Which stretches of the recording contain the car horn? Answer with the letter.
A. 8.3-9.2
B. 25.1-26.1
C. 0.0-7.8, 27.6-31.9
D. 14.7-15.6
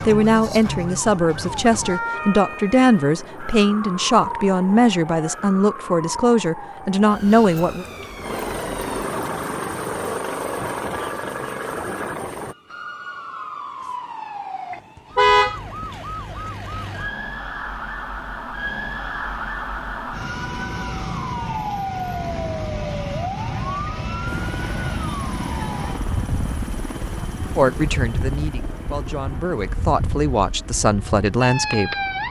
D.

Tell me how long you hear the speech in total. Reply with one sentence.
The speech can be heard for 12 seconds in total.